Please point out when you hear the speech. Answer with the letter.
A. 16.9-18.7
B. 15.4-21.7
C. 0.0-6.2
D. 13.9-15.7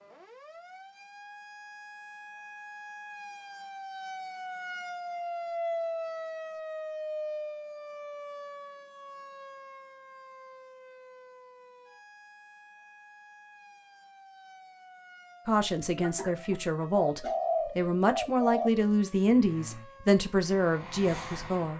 B.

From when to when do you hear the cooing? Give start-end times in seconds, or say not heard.
16.9-18.7.